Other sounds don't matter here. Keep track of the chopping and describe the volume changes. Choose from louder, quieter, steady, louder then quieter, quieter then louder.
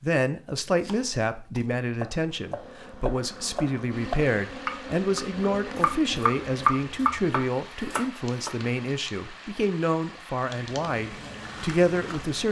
louder then quieter.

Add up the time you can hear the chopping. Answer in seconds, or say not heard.
8 s.